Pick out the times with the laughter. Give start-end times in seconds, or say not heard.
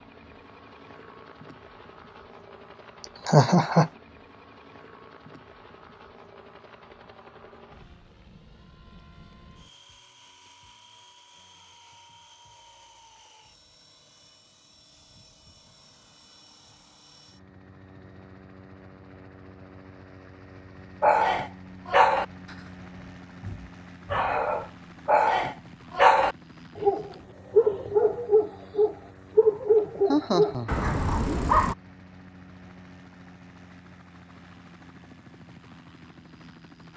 3.0-3.9, 30.1-31.0.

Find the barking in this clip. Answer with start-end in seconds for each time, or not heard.
21.0-31.8.